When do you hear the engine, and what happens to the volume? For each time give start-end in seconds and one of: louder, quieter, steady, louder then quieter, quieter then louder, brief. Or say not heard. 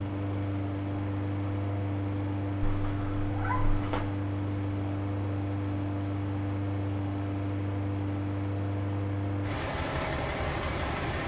0.0-11.2 steady.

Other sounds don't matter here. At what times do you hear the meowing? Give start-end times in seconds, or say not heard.
2.6-4.1.